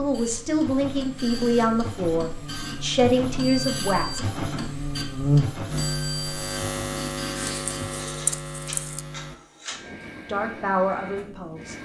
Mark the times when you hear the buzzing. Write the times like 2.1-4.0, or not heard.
0.0-9.3.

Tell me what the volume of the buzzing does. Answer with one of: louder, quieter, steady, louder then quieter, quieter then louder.
louder then quieter.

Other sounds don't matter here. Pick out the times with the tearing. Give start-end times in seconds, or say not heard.
7.3-9.1.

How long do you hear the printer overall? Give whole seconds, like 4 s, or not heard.
12 s.